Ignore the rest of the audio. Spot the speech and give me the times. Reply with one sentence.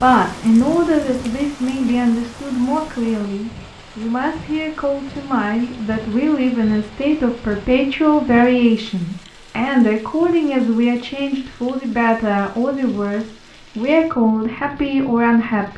The speech can be heard from 0.0 to 15.7 s.